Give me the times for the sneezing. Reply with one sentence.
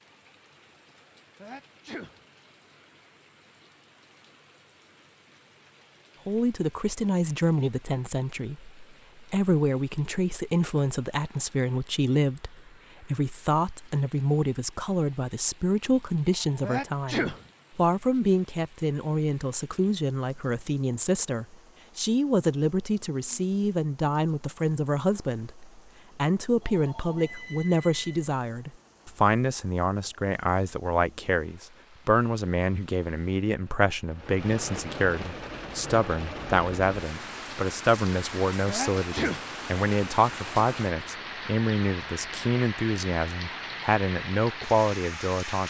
The sneezing can be heard from 1.4 to 2.2 s, from 16.6 to 17.4 s and from 38.6 to 39.5 s.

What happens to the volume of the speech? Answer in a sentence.
The loudness of the speech stays about the same.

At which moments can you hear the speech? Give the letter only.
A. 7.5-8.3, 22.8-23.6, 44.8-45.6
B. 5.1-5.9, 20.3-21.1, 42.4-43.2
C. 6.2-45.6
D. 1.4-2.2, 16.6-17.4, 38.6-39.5
C.